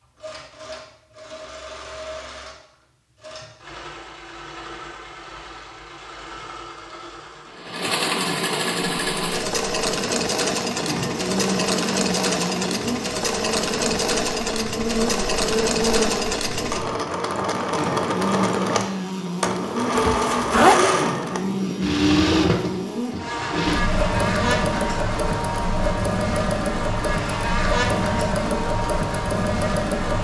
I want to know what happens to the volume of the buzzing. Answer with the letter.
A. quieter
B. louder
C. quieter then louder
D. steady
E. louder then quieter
D.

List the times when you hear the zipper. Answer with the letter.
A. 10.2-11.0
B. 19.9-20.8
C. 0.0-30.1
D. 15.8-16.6
B.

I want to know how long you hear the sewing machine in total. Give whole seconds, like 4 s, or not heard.
30 s.